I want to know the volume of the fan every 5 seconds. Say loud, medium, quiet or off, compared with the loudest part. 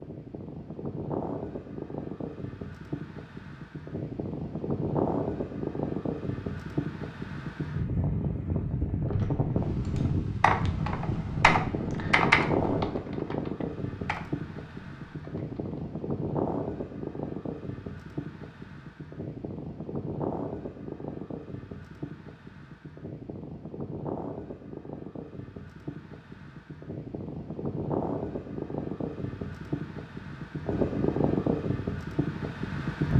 medium, loud, loud, medium, medium, medium, loud.